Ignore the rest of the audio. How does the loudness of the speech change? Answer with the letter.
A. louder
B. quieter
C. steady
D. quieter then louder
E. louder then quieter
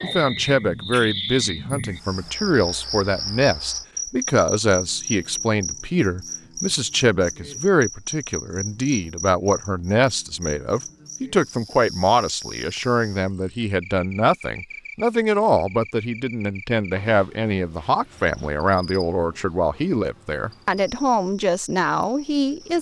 C.